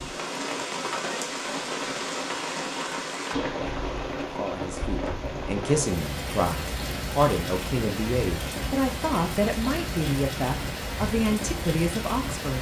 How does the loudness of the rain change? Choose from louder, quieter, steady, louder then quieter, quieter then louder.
steady.